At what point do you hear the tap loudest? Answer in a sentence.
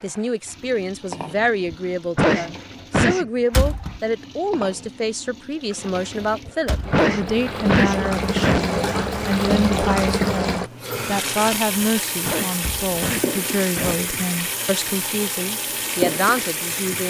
The loudest moment of the tap is at 10 seconds.